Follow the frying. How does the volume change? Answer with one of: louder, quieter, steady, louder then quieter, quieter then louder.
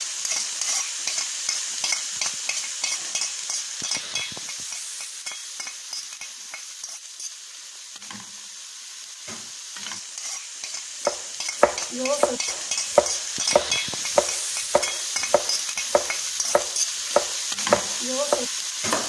quieter then louder.